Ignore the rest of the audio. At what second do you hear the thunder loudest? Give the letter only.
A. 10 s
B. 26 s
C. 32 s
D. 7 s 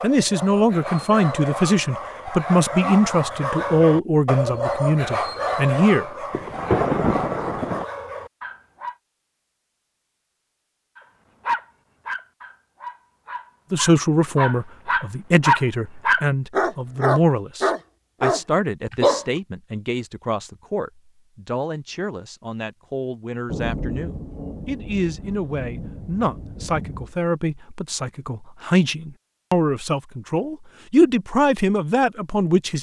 D.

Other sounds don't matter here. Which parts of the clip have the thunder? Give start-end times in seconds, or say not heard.
6.3-7.8, 23.4-27.1.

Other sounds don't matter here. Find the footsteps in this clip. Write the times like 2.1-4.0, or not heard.
not heard.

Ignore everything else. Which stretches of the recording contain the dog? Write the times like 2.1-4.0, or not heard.
0.0-8.9, 10.9-19.2.